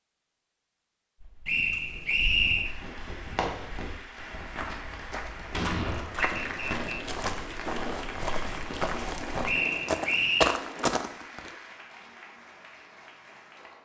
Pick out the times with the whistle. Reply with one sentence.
The whistle can be heard from 1.4 to 2.8 s, from 6.2 to 7.0 s and from 9.4 to 10.6 s.